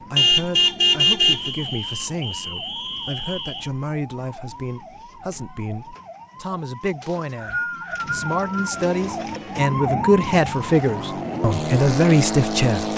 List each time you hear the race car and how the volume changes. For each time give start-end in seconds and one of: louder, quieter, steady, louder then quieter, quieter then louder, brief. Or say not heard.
8.8-12.9 louder.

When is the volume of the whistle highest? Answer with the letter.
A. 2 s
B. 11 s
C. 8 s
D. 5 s
C.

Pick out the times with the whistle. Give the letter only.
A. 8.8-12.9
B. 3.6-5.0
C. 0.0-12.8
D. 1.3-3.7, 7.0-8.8
D.